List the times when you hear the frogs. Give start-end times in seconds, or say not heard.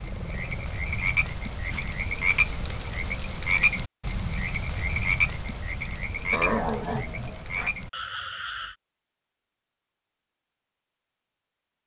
0.0-8.8.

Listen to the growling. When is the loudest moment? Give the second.
7 s.